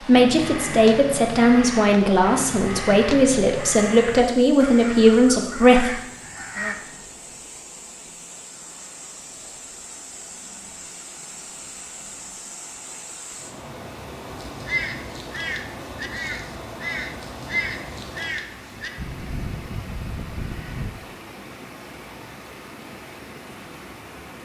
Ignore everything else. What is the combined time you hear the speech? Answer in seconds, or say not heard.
6 s.